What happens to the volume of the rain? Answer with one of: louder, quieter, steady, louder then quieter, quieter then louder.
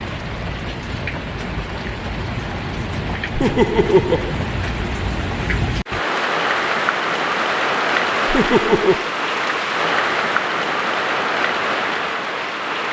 louder.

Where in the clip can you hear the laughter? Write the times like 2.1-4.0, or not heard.
3.4-4.3, 8.2-9.1.